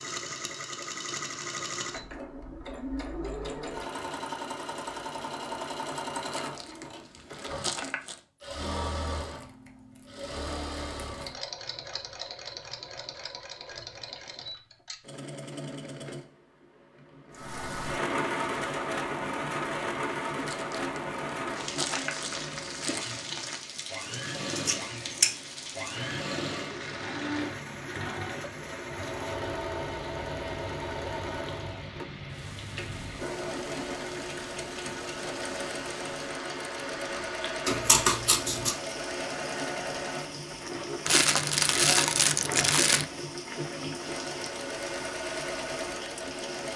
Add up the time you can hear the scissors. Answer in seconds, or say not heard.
4 s.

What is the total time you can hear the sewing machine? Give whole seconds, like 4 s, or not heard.
47 s.